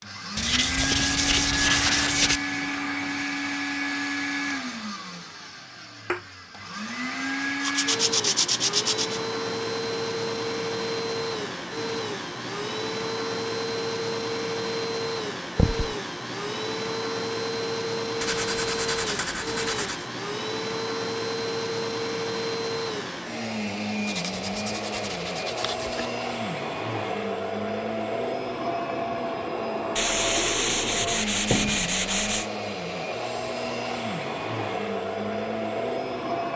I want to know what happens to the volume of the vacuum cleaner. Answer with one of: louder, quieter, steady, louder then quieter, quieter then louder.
steady.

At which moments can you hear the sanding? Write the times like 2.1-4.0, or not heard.
0.3-2.4, 7.6-9.2, 18.2-20.1, 24.1-26.1, 29.9-32.5.